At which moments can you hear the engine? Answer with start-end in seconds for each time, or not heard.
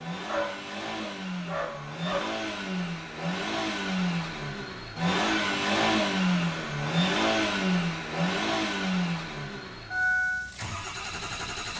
0.0-11.7.